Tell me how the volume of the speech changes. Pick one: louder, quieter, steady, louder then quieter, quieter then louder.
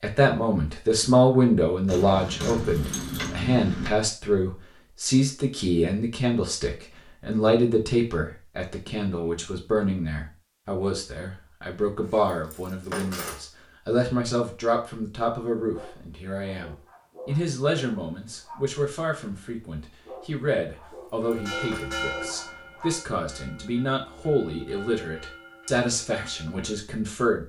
quieter.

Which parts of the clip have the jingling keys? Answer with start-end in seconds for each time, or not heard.
1.9-3.9, 12.0-13.4, 20.8-22.0.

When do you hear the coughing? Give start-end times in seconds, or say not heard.
not heard.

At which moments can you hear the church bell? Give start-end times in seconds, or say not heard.
21.2-26.9.